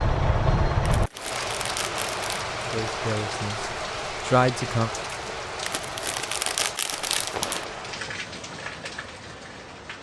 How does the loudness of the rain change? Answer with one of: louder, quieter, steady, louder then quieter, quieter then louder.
quieter.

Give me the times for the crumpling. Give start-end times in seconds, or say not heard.
0.8-2.4, 5.7-7.7.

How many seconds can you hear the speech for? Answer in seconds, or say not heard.
2 s.